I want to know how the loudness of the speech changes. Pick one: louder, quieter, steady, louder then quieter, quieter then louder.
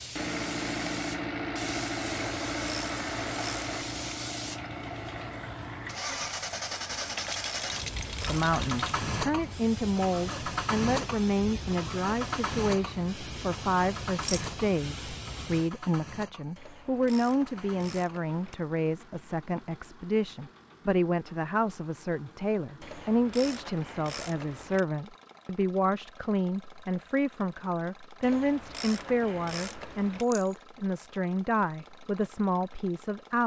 steady.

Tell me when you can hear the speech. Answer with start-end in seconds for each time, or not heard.
8.2-33.4.